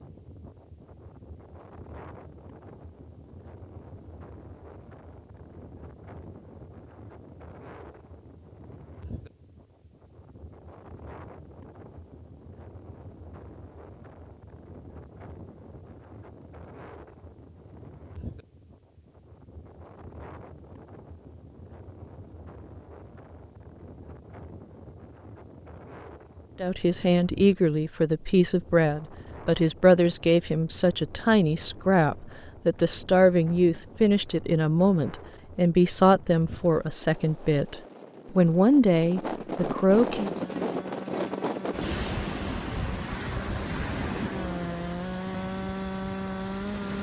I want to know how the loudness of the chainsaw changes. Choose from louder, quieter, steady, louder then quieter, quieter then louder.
louder.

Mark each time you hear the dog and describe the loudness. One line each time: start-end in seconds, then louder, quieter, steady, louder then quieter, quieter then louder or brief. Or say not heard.
not heard.